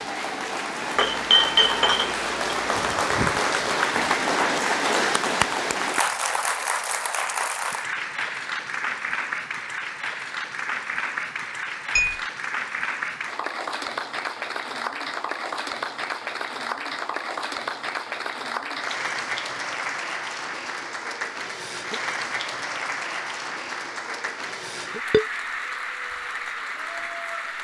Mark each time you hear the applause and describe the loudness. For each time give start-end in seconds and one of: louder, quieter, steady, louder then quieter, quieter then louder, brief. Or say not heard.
0.0-27.5 quieter.